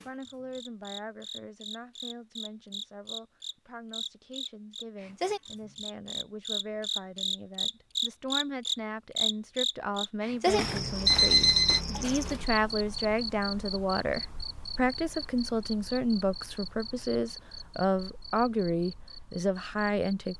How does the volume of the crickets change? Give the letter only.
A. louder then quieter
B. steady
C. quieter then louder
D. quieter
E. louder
A.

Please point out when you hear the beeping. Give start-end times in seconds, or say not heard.
11.1-11.8.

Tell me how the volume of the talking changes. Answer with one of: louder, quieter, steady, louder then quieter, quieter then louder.
louder.